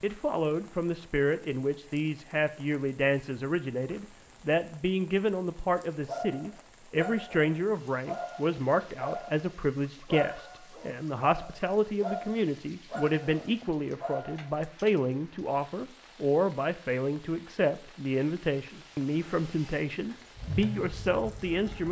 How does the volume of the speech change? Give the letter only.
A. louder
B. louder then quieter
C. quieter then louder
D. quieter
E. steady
E.